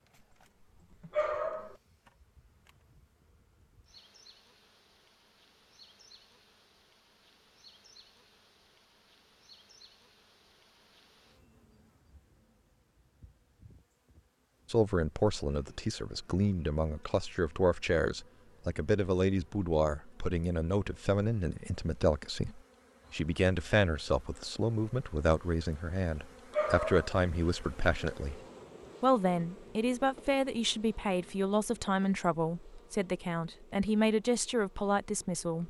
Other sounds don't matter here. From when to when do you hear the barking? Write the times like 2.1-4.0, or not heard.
1.1-1.8, 26.5-27.1.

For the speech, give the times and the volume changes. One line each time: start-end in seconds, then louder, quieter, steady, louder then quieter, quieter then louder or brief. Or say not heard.
14.7-28.4 steady
29.0-35.6 steady.